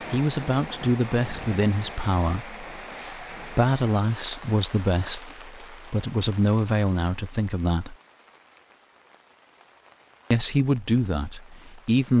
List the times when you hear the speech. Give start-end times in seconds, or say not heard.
0.1-8.0, 10.3-12.1.